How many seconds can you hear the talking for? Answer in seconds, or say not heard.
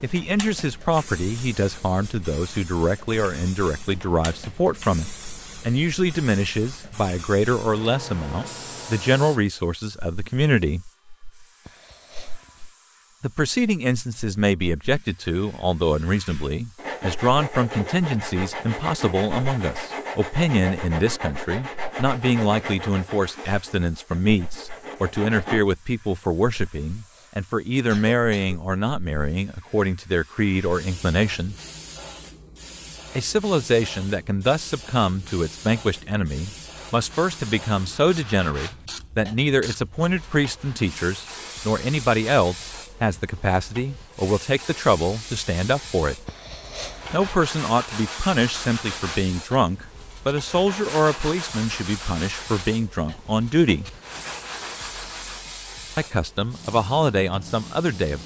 51 s.